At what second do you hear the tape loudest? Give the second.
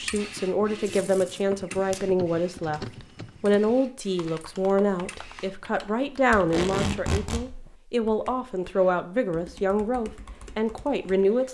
7 s.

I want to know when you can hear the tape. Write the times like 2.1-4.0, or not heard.
0.8-2.0, 6.3-7.5.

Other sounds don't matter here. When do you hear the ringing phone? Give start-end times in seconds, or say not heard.
not heard.